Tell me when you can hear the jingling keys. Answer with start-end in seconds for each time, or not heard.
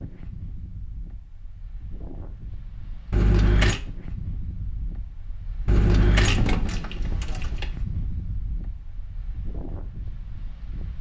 3.1-3.8, 5.7-7.7.